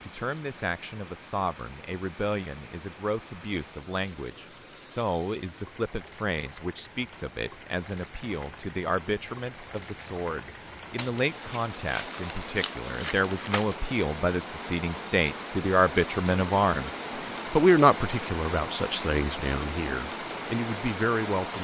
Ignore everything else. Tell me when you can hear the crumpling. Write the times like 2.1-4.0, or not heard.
10.9-13.8.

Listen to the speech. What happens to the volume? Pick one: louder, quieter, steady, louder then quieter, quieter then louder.
louder.